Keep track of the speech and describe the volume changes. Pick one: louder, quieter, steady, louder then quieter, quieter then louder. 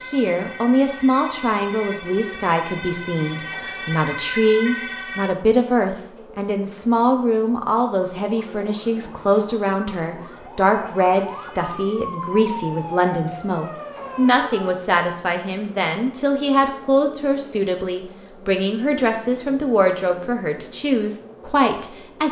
steady.